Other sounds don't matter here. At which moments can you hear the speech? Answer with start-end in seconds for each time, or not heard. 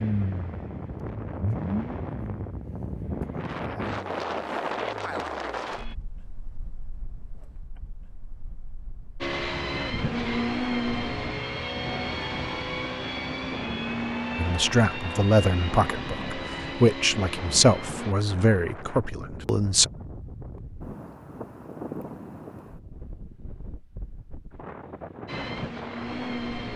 14.3-19.9.